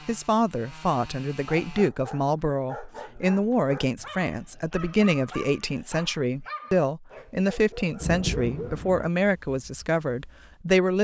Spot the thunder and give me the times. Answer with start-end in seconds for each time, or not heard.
8.0-9.1.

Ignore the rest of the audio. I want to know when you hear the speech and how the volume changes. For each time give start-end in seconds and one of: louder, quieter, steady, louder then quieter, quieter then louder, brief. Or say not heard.
0.1-10.9 steady.